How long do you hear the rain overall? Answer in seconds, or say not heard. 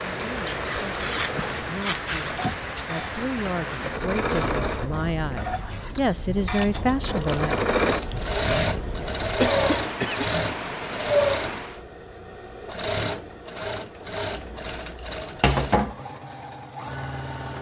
12 s.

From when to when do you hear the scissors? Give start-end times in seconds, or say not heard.
0.5-2.9, 6.5-8.3, 14.3-15.9.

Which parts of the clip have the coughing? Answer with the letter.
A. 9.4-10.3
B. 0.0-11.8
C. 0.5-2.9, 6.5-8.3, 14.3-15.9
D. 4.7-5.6
A.